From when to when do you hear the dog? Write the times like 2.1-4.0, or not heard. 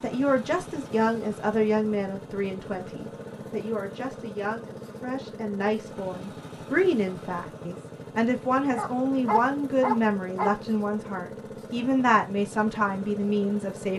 8.7-10.6.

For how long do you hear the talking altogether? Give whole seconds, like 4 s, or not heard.
14 s.